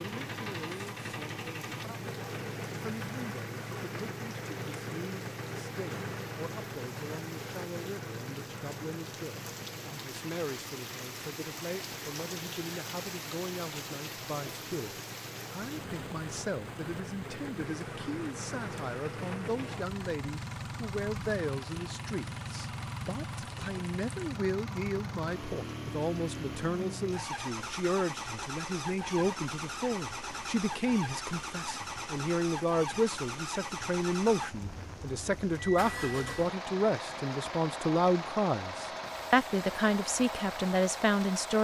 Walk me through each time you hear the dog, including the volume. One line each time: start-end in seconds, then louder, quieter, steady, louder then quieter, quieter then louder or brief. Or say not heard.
not heard.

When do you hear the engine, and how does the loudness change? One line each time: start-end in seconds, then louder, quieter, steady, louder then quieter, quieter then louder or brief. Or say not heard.
0.0-41.5 quieter then louder.